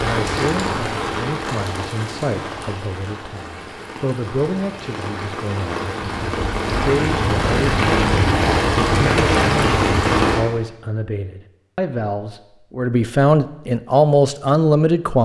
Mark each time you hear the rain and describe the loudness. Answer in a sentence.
The rain can be heard from 0.0 to 10.4 s, getting quieter then louder.